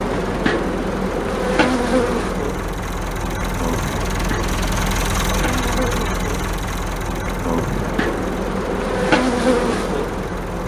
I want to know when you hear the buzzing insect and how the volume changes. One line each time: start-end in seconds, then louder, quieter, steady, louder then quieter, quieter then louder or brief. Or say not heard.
0.0-10.6 quieter then louder.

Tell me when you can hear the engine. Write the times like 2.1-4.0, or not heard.
0.0-10.6.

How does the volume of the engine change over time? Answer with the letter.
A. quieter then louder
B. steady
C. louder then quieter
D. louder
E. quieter
C.